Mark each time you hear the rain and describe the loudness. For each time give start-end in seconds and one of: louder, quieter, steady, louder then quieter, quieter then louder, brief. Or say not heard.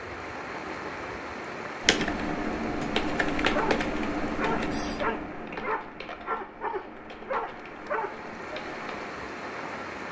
0.0-10.0 quieter then louder.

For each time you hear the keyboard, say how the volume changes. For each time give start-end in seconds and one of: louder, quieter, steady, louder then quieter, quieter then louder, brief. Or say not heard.
1.8-8.8 quieter.